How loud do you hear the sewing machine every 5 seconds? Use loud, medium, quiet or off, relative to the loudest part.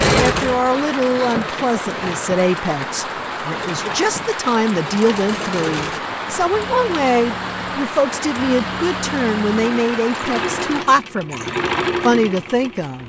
loud, medium, loud.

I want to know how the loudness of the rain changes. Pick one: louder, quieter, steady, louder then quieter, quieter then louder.
steady.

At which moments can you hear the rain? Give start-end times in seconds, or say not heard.
0.2-10.8.